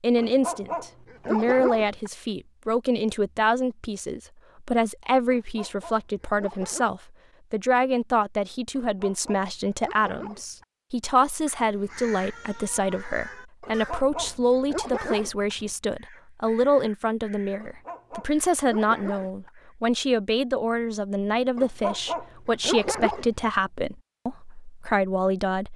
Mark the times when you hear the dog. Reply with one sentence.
You can hear the dog from 0.1 to 2.1 s, from 5.3 to 6.9 s, from 8.8 to 10.7 s, from 13.6 to 15.6 s, from 17.6 to 19.5 s and from 21.6 to 23.4 s.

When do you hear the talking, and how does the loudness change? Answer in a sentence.
You can hear the talking from 0.0 to 25.7 s, at a steady volume.